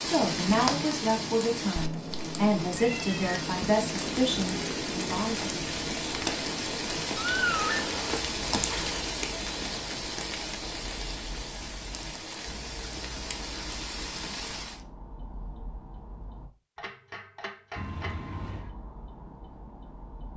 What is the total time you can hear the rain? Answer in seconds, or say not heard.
15 s.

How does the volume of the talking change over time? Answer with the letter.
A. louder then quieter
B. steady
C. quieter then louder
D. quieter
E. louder
B.